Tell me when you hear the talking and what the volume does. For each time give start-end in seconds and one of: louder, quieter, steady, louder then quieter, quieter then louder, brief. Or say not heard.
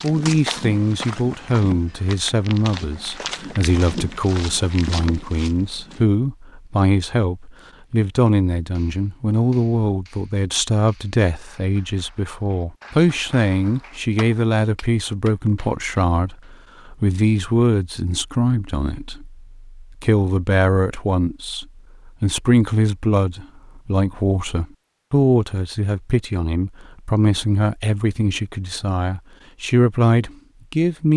0.0-31.1 steady.